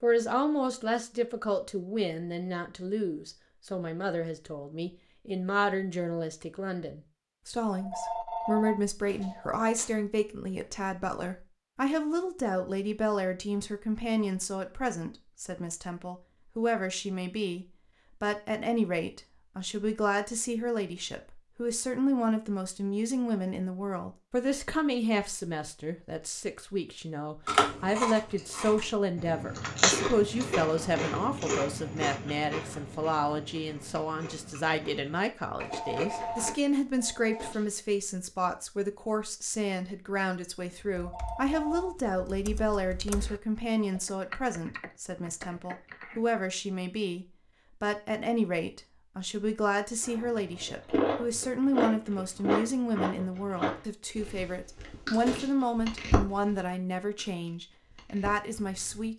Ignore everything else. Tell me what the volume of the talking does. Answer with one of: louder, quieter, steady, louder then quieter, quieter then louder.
steady.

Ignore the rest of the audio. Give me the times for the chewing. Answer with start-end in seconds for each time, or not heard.
27.4-36.5, 50.0-59.1.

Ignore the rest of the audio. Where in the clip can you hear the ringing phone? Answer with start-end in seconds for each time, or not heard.
7.8-9.6, 35.5-37.5, 41.0-42.0.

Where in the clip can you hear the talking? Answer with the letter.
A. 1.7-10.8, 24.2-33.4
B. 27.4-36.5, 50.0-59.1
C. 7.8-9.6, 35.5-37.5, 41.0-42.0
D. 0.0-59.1
D.